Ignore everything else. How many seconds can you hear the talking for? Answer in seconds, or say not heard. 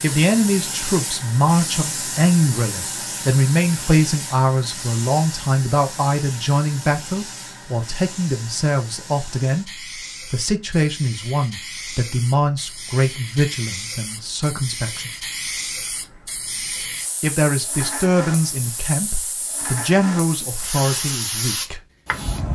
19 s.